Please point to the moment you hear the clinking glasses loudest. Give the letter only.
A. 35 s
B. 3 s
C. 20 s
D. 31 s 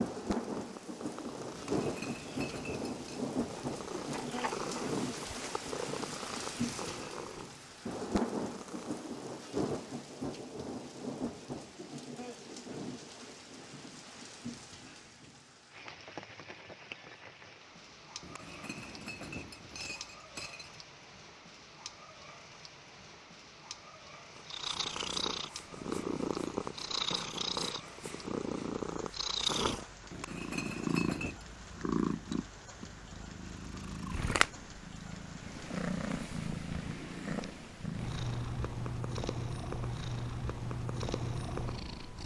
D.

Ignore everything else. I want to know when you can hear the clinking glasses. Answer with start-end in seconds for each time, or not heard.
1.6-3.2, 18.2-20.8, 30.1-31.4.